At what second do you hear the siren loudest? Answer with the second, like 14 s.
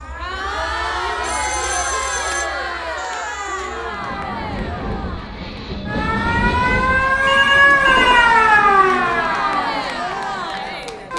8 s.